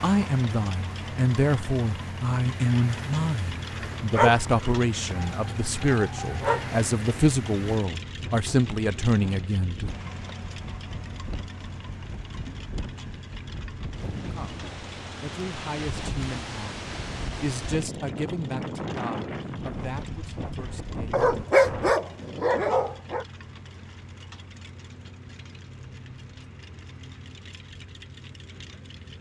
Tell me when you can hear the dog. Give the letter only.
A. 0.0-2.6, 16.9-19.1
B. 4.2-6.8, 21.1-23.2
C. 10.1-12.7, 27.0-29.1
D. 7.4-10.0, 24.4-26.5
B.